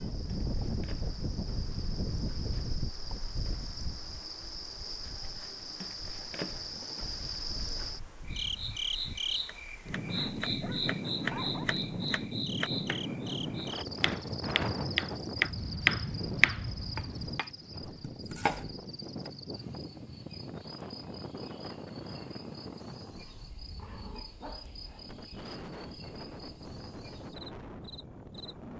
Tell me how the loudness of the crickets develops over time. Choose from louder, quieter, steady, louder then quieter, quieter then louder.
louder then quieter.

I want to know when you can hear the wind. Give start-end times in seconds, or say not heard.
0.0-28.7.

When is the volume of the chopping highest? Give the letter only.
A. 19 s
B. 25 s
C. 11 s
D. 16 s
D.